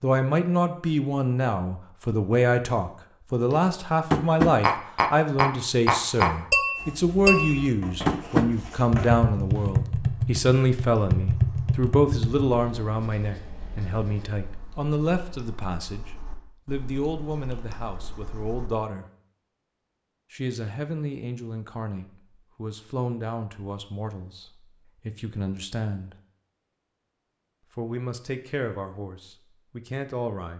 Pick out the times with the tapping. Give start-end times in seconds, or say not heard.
3.5-12.4.